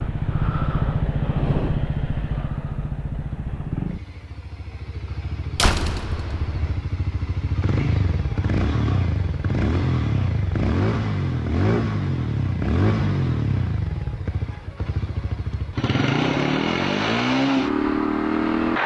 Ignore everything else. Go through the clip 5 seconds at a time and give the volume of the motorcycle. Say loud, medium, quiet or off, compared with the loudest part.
medium, medium, loud, loud.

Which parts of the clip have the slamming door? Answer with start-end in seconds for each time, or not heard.
5.5-6.8.